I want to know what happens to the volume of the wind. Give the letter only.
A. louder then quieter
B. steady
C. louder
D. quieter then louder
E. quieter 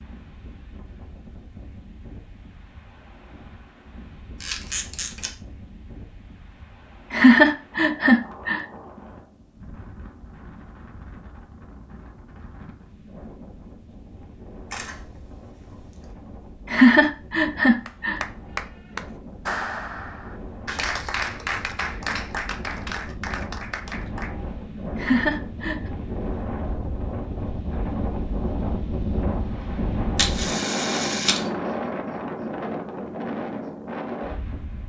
C.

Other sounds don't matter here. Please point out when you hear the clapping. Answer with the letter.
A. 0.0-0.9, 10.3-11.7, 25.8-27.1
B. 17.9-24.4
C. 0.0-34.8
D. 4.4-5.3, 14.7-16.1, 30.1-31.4
B.